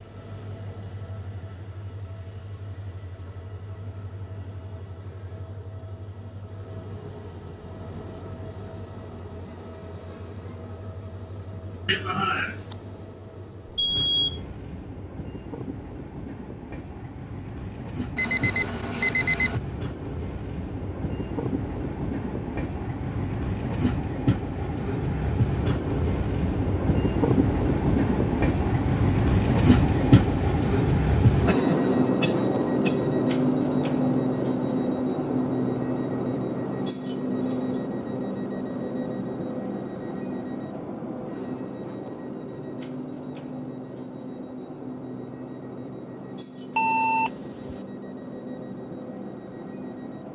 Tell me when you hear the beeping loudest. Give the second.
19 s.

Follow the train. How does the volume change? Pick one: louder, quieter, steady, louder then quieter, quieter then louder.
louder then quieter.